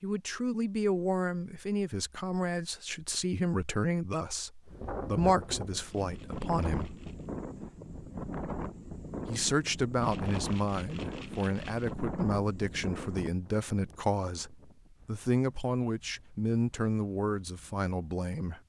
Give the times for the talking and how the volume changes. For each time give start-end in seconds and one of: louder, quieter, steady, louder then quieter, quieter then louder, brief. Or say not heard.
0.0-7.0 steady
9.2-18.6 steady.